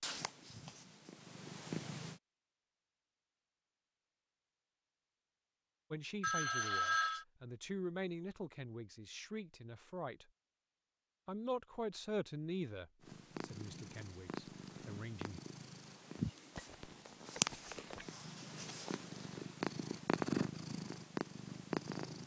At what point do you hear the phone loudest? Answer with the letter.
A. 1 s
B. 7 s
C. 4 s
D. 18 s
B.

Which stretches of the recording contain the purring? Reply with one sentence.
You can hear the purring from 0.0 to 2.2 s and from 13.0 to 22.2 s.